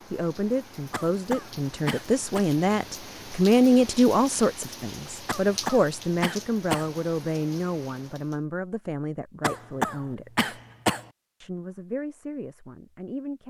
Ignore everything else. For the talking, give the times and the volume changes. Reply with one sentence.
You can hear the talking from 0.1 to 10.5 s, getting louder then quieter; and briefly from 11.4 to 13.4 s.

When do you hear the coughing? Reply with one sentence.
The coughing can be heard from 0.9 to 2.5 s, from 5.2 to 6.9 s and from 9.4 to 11.1 s.